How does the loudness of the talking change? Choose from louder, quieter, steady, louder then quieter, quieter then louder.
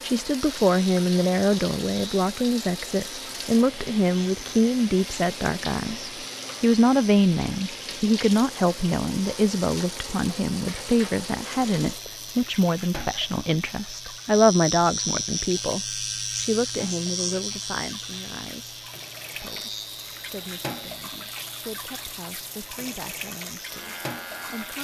quieter.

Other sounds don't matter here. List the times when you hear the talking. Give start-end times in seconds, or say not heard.
0.0-18.8, 19.4-24.7.